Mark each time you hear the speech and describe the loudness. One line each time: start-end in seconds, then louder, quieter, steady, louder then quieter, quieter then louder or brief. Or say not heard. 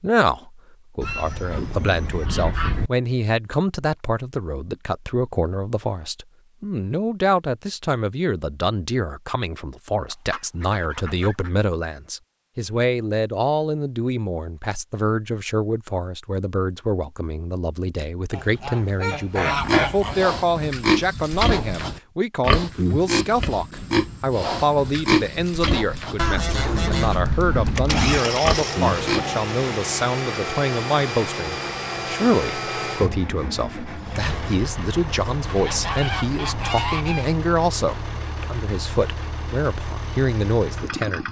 0.0-41.2 steady.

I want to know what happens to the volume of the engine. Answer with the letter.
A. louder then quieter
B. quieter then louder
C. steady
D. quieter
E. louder
D.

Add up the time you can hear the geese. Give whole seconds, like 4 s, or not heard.
9 s.